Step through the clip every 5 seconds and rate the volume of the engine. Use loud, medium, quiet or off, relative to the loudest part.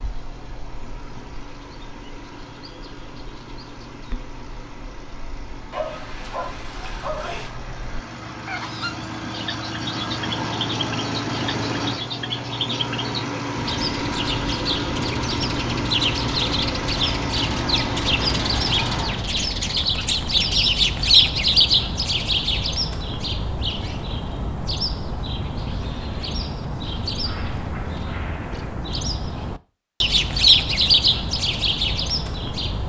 quiet, medium, loud, loud, off, off, off.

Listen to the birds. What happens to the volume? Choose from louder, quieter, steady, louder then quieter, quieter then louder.
louder.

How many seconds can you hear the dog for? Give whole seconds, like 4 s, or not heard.
2 s.